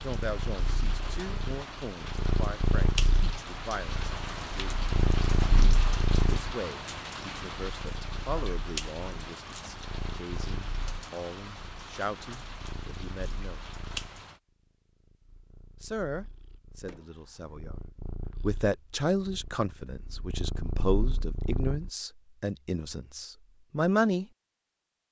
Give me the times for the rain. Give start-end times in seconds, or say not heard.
0.0-14.4.